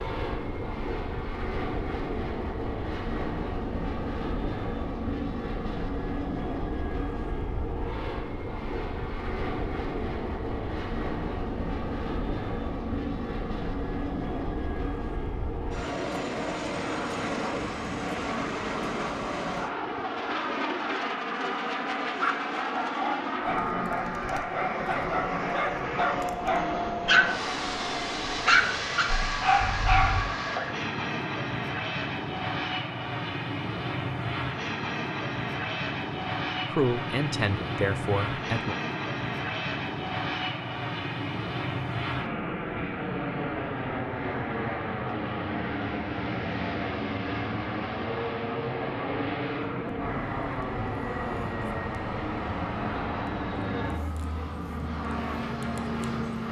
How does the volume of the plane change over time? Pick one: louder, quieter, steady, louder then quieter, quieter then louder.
steady.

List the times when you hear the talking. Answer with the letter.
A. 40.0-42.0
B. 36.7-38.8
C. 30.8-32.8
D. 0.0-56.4
B.